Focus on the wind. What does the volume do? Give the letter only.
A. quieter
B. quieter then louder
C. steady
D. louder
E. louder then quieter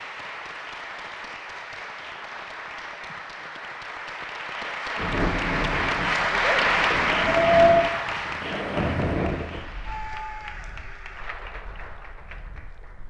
E.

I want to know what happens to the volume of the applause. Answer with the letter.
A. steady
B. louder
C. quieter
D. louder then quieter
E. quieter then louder
D.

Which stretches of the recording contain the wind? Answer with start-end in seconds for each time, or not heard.
5.0-13.0.